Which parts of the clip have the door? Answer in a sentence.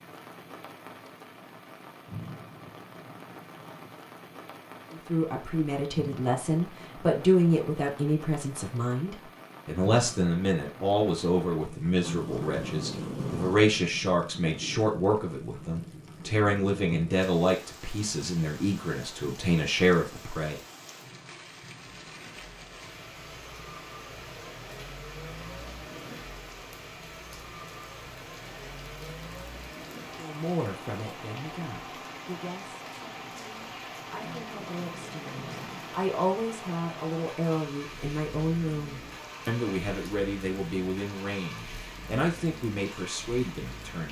You can hear the door from 12.0 to 13.8 s and from 34.2 to 36.0 s.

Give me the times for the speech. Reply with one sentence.
The speech can be heard from 4.9 to 20.6 s and from 30.1 to 44.0 s.